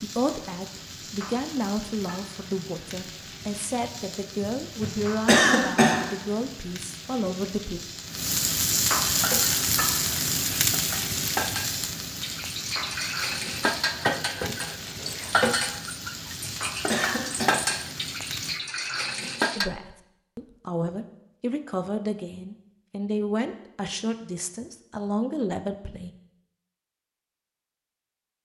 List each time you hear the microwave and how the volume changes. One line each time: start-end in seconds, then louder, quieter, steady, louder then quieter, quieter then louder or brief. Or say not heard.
not heard.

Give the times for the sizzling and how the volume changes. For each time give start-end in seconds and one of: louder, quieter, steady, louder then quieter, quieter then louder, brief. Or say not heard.
0.0-18.6 louder then quieter.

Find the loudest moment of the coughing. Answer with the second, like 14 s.
5 s.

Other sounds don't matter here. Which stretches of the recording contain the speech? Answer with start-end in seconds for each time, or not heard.
0.0-7.8, 19.6-26.1.